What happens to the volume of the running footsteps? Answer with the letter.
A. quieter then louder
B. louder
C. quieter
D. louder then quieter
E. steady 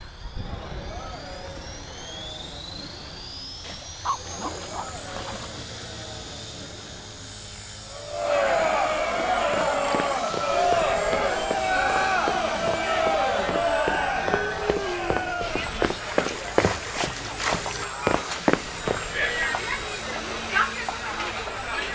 B.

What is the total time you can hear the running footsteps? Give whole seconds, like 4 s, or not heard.
10 s.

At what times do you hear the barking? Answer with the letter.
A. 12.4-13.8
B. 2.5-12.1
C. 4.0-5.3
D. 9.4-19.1
C.